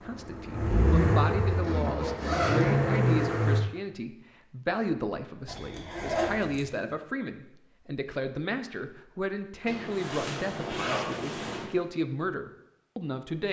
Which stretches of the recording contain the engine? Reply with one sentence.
You can hear the engine from 0.0 to 3.6 s.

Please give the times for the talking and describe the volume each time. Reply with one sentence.
The talking can be heard from 0.0 to 13.4 s, at a steady volume.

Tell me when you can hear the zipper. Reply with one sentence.
You can hear the zipper from 1.2 to 2.9 s, from 5.5 to 6.7 s and from 9.7 to 11.7 s.